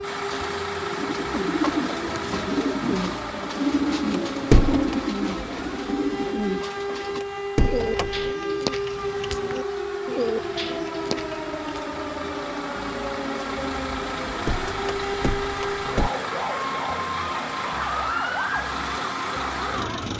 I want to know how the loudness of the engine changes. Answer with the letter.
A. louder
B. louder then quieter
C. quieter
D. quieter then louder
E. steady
D.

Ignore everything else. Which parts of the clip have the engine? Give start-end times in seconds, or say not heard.
0.0-20.1.